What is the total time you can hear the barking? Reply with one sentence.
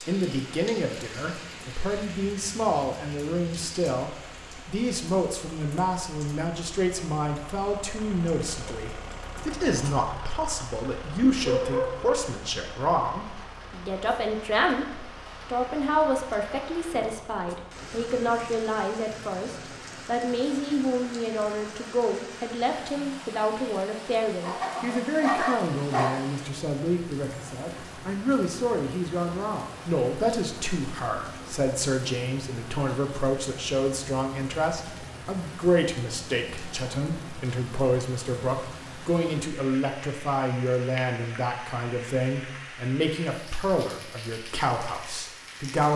The barking can be heard for 3 seconds in total.